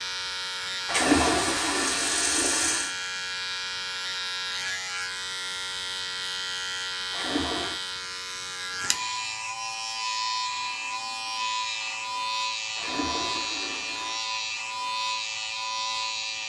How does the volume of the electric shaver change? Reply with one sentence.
The volume of the electric shaver stays about the same.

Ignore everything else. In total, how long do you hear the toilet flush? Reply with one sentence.
The toilet flush can be heard for 4 seconds in total.